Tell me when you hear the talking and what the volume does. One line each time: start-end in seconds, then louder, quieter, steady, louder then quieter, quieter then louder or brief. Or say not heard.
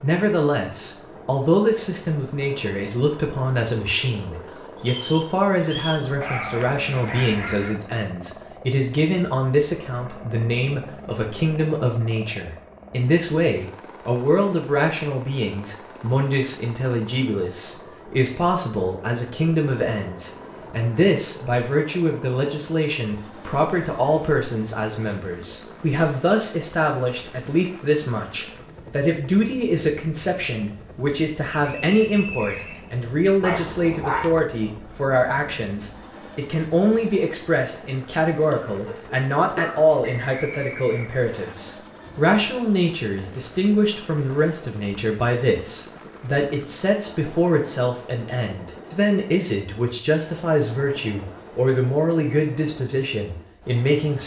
0.0-54.2 steady.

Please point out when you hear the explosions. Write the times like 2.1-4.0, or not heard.
not heard.